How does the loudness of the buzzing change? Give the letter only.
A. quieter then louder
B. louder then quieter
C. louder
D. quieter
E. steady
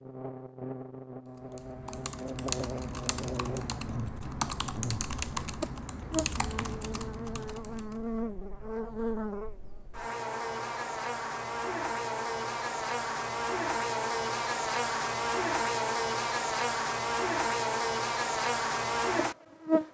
C.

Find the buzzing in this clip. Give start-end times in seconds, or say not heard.
0.0-19.8.